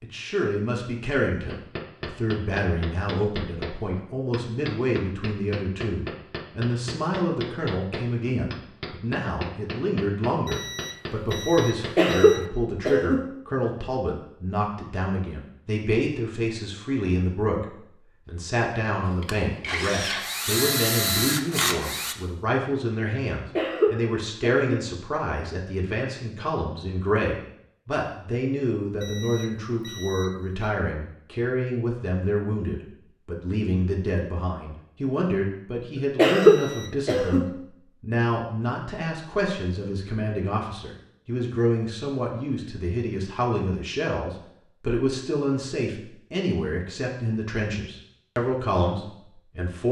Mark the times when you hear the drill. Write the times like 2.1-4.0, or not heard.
19.2-22.1.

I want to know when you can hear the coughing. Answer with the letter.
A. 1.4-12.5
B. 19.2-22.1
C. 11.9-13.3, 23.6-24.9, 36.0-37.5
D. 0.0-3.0
C.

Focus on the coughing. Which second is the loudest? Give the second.
36 s.